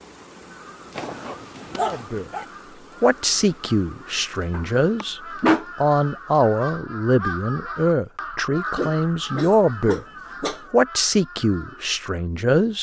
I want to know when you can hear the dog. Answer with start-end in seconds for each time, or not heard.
0.9-2.5, 4.5-5.7, 8.8-10.7.